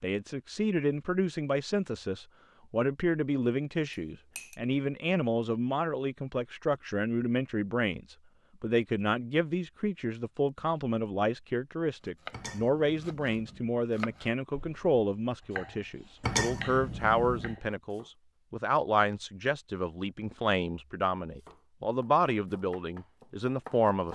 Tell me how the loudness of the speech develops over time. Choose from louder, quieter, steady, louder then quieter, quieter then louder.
steady.